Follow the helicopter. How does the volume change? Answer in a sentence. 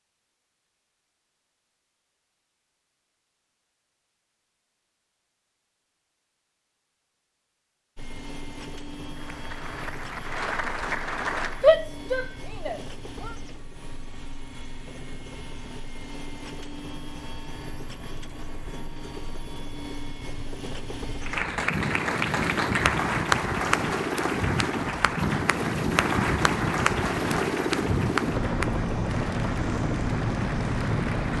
The volume of the helicopter goes up.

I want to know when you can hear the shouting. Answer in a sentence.
You can hear the shouting from 11.6 to 13.3 s.